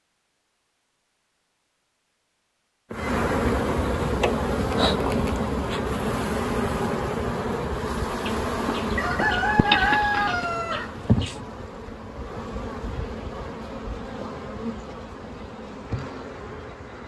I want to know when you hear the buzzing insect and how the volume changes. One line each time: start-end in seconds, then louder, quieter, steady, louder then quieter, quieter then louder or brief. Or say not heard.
2.9-17.0 quieter.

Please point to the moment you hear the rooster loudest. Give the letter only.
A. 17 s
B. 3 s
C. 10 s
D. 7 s
C.